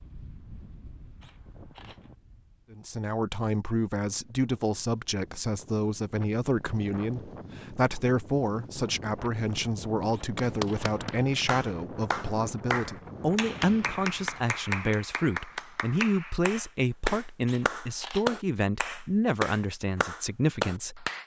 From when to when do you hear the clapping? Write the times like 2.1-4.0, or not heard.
10.4-21.2.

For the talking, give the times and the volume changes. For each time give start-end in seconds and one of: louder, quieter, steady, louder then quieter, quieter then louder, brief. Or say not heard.
2.7-21.1 steady.